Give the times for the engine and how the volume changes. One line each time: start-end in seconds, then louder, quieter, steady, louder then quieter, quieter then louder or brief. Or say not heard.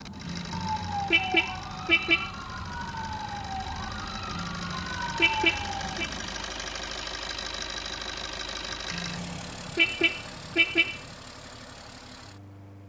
0.0-12.8 louder then quieter.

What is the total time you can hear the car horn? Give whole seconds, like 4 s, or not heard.
6 s.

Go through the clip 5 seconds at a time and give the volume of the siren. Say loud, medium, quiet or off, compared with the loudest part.
loud, loud, off.